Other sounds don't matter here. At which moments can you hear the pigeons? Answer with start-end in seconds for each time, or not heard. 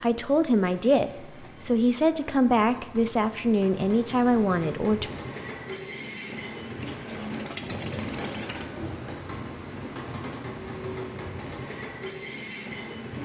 6.4-8.7.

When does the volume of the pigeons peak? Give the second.
8 s.